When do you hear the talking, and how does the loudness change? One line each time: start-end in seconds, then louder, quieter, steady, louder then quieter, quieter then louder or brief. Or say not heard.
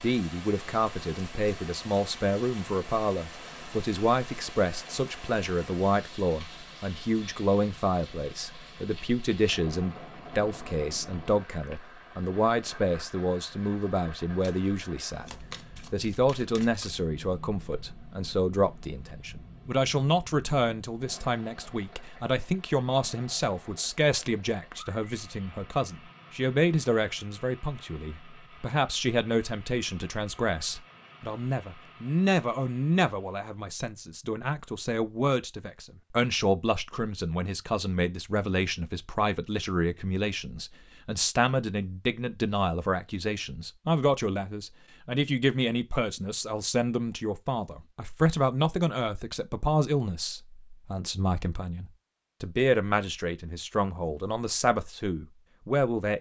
0.0-56.1 steady.